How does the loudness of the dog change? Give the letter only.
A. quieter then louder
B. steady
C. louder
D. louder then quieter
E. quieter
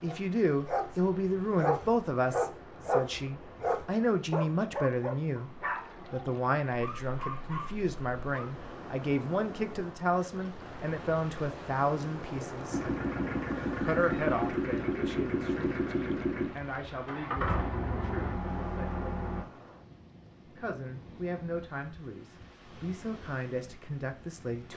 E.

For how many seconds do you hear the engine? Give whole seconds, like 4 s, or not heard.
7 s.